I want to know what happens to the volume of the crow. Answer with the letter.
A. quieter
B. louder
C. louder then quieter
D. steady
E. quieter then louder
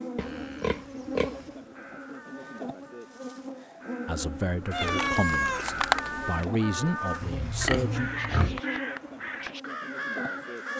B.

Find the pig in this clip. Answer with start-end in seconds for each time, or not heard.
0.1-1.4, 7.2-8.6.